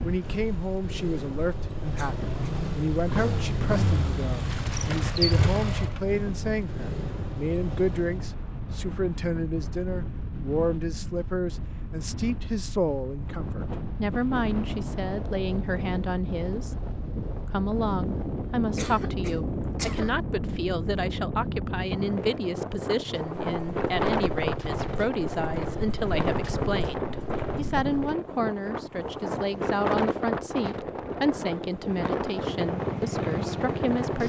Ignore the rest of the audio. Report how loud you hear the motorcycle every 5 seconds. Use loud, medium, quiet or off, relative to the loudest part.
loud, loud, off, off, medium, medium, loud.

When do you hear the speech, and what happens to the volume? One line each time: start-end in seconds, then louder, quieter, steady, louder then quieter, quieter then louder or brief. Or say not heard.
0.0-34.2 steady.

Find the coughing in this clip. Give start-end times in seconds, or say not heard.
1.9-2.5, 18.8-20.1.